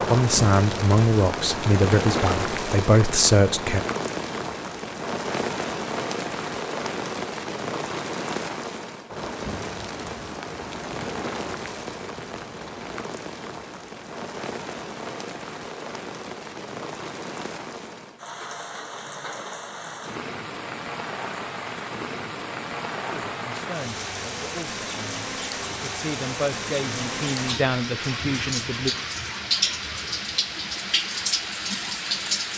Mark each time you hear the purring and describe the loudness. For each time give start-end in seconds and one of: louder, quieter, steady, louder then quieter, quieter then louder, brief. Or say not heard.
not heard.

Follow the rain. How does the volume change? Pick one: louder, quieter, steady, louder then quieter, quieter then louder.
quieter then louder.